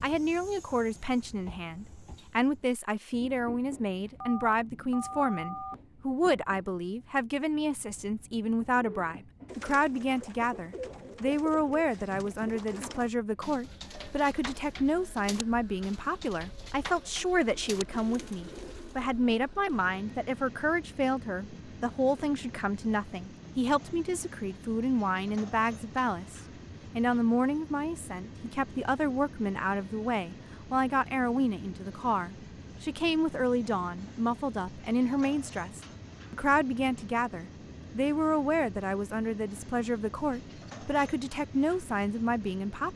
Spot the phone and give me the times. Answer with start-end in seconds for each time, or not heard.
4.2-5.8.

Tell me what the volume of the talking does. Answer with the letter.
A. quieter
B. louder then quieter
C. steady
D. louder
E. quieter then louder
C.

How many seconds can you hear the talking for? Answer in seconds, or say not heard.
43 s.